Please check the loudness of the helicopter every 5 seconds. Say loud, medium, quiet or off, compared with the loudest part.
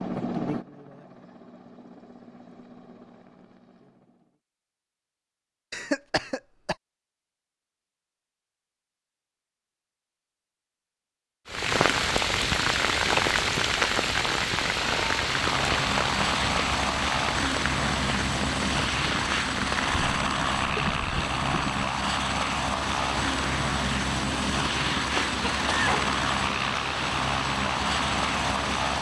medium, off, off, loud, loud, loud.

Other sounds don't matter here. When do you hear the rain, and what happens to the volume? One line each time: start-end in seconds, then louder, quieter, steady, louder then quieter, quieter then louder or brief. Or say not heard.
11.4-28.9 quieter.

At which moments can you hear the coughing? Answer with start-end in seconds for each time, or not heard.
5.7-6.8, 25.1-26.1.